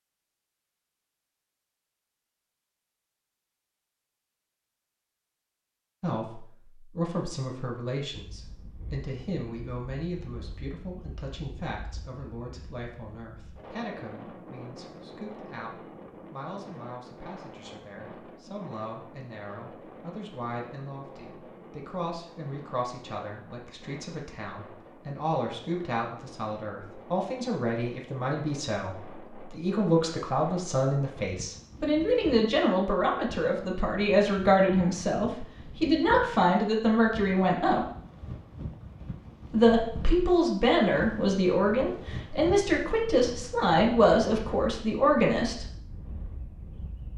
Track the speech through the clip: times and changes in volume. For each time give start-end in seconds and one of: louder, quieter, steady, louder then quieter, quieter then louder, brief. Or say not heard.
6.0-37.9 quieter then louder
39.5-45.6 steady.